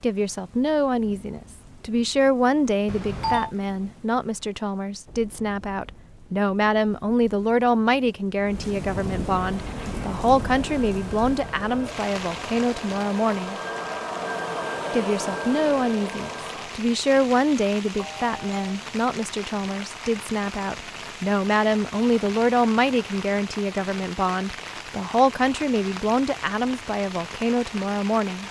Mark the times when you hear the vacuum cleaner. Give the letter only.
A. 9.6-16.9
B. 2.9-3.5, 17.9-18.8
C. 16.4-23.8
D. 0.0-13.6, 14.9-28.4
A.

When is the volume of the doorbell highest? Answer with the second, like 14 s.
3 s.